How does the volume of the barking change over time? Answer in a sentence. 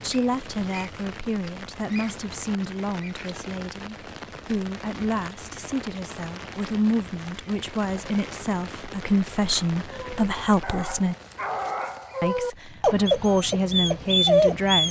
The volume of the barking goes up.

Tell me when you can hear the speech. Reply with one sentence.
The speech can be heard from 0.0 to 11.2 s and from 12.2 to 14.8 s.